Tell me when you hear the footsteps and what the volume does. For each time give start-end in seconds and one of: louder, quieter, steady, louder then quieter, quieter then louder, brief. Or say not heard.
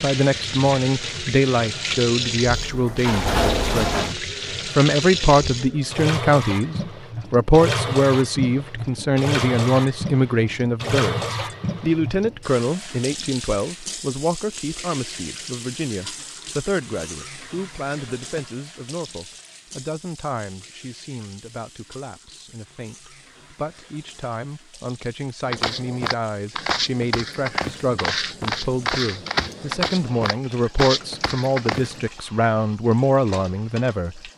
25.4-32.0 steady.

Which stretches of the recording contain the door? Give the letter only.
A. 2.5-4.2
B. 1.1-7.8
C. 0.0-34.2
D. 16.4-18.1
A.